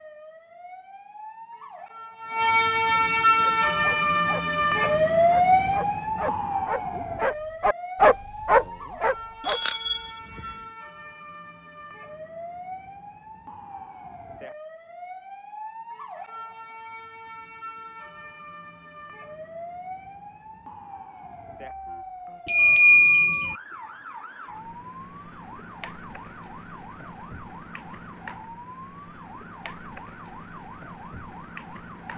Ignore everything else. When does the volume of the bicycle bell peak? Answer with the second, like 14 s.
23 s.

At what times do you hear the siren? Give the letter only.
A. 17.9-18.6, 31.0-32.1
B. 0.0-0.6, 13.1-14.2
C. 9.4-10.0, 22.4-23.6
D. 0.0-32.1
D.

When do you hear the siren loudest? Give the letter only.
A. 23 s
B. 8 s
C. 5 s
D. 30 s
C.